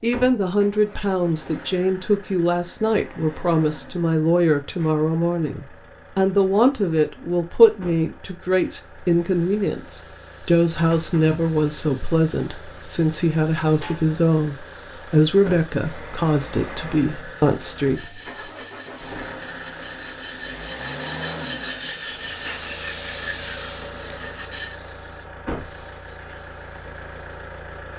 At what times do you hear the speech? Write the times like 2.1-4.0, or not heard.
0.0-18.5.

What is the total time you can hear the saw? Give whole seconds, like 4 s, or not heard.
7 s.